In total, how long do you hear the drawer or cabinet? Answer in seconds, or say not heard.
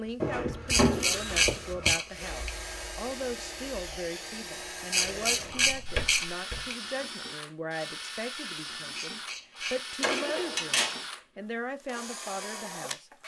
4 s.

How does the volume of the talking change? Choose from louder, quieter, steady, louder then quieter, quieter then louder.
steady.